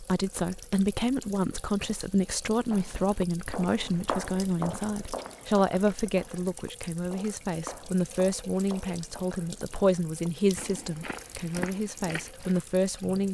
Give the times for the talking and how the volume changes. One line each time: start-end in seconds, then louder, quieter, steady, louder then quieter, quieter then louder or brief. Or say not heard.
0.0-13.2 steady.